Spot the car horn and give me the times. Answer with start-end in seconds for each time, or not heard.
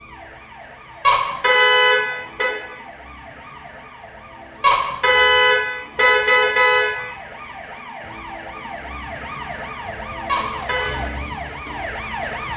1.0-2.5, 4.6-6.8, 10.2-10.9.